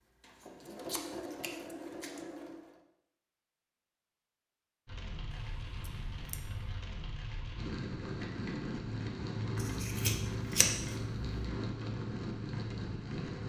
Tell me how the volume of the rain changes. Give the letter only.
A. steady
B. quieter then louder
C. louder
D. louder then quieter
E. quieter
C.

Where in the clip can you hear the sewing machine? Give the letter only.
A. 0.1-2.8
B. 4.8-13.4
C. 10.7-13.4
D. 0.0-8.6
A.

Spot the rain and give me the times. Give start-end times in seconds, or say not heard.
4.8-13.4.